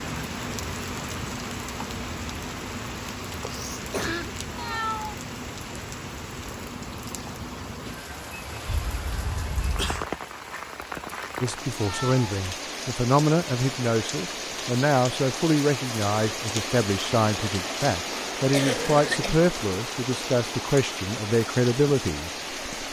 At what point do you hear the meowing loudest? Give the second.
5 s.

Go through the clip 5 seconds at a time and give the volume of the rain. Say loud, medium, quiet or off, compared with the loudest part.
loud, medium, loud, loud, loud.